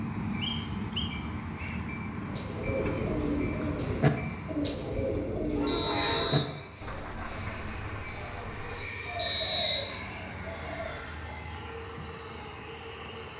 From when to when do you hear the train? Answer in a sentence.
You can hear the train from 0.0 to 13.3 s.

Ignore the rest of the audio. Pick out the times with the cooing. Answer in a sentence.
You can hear the cooing from 2.2 to 11.2 s.